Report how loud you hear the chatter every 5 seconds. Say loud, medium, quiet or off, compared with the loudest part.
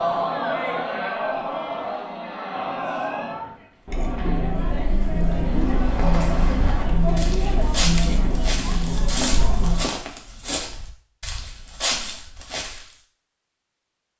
loud, loud, off.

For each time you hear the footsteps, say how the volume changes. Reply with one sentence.
The footsteps can be heard from 5.5 to 12.8 s, at a steady volume.